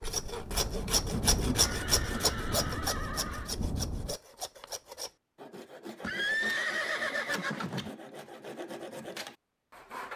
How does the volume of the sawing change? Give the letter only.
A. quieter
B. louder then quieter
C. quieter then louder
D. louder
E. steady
A.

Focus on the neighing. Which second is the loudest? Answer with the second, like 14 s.
6 s.